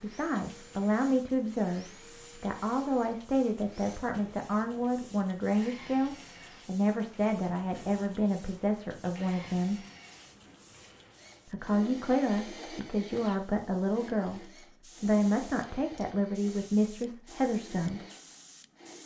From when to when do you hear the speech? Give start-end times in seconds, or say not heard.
0.0-9.8, 11.4-18.0.